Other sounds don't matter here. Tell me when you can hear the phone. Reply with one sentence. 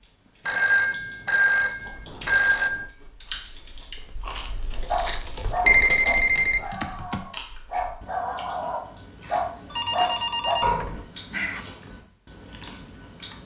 You can hear the phone from 0.5 to 2.9 s, from 5.7 to 6.7 s and from 9.7 to 11.7 s.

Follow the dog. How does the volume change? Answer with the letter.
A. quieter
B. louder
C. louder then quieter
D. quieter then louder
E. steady
D.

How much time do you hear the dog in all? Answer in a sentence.
The dog can be heard for 6 seconds in total.